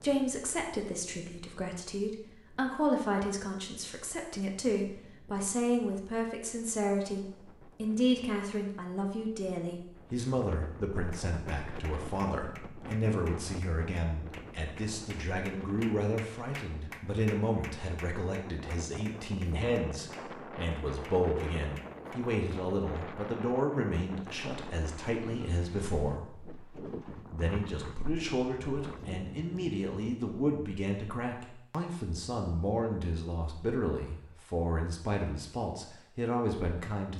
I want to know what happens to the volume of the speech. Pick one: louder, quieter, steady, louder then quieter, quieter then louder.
steady.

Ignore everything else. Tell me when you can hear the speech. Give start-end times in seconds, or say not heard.
0.0-37.1.